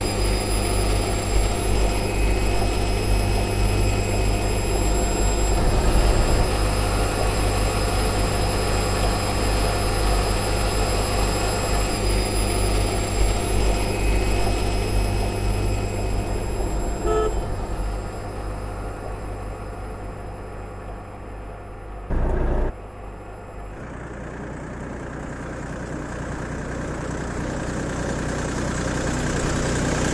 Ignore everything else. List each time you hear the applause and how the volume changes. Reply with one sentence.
You can't hear the applause here.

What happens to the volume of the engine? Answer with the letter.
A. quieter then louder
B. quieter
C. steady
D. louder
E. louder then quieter
A.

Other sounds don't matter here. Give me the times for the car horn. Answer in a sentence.
The car horn can be heard from 5.5 to 6.5 s, from 16.2 to 17.9 s and from 22.1 to 22.8 s.